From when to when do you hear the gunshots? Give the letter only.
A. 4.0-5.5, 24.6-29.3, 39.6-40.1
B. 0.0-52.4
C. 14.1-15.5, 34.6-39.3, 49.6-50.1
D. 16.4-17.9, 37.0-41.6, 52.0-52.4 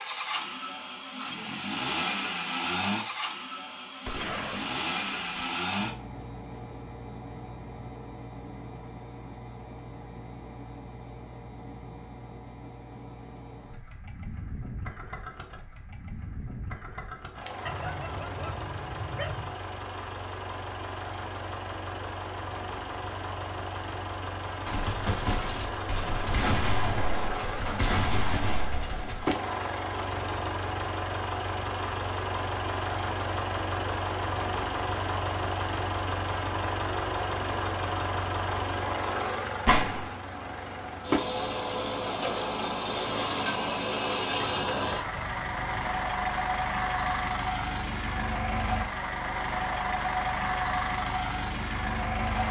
A.